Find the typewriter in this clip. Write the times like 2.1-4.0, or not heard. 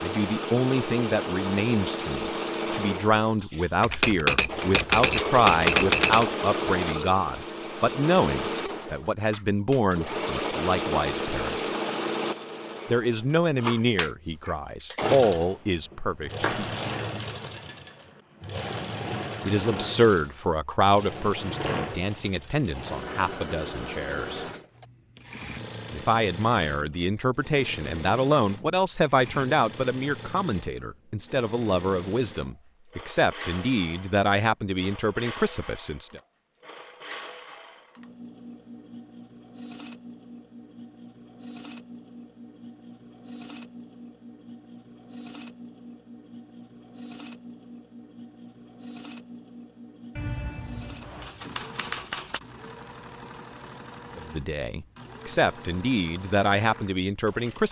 3.8-6.2, 50.1-52.4.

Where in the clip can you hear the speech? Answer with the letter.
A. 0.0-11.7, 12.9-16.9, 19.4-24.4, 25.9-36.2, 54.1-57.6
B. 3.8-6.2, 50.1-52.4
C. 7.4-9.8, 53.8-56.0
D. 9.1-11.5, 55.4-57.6
A.